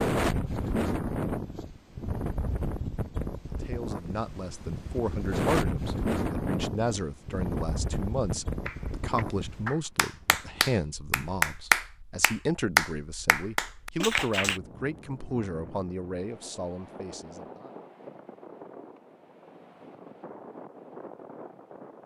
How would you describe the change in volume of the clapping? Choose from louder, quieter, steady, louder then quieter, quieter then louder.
louder then quieter.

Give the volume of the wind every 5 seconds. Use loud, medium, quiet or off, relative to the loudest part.
loud, loud, quiet, quiet, quiet.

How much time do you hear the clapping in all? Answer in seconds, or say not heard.
6 s.